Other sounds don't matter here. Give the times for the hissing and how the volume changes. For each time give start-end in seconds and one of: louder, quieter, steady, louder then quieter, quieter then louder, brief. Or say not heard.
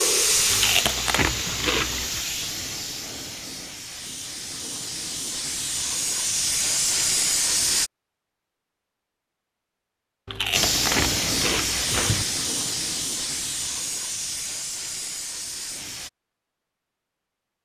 0.0-7.9 quieter then louder
10.5-16.1 quieter.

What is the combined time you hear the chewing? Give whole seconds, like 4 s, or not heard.
4 s.